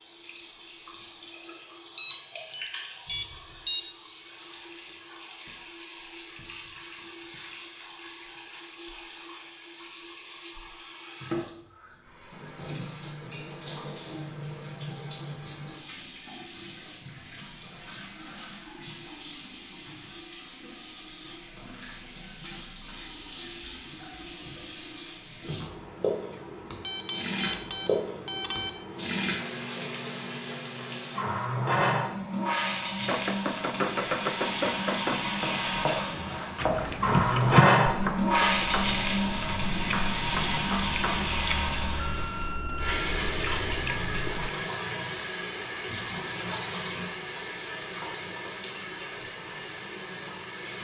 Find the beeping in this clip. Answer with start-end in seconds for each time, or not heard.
1.9-3.9, 26.4-28.7, 42.0-43.0.